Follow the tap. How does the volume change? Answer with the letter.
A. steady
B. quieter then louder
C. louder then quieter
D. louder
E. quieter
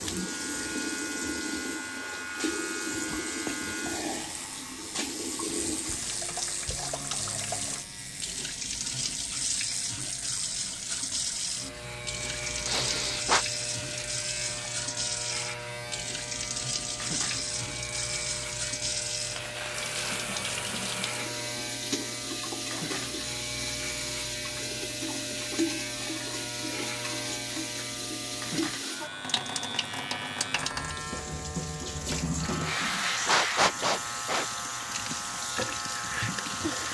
A.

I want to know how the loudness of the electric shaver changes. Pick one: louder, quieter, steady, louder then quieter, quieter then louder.
steady.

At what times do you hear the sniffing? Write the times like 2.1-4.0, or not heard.
12.7-13.4, 32.6-34.5.